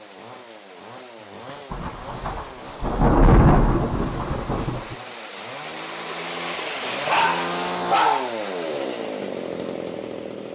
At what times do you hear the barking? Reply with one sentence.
You can hear the barking from 7.0 to 8.8 s.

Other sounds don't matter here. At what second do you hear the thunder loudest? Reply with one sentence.
The loudest moment of the thunder is at 3 seconds.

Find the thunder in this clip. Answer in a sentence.
The thunder can be heard from 1.7 to 5.0 s.